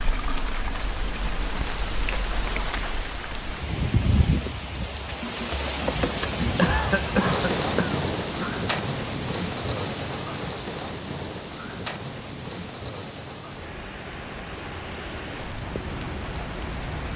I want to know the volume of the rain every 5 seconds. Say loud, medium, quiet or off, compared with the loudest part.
loud, loud, medium, medium.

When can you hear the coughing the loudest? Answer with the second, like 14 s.
7 s.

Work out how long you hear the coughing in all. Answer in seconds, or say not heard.
3 s.